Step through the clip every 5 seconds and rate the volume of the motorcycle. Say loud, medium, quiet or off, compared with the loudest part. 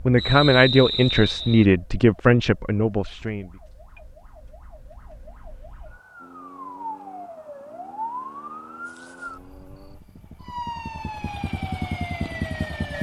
off, quiet, loud.